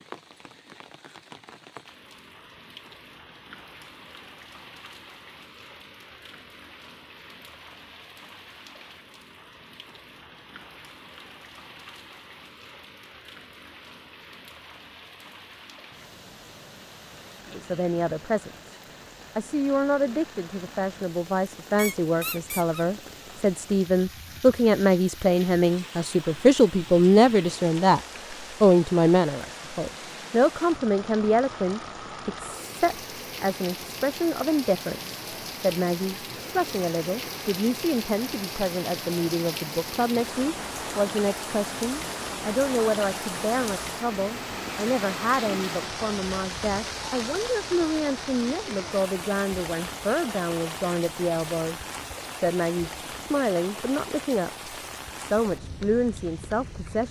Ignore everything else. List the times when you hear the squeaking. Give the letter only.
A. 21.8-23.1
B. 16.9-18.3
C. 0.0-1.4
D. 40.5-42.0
A.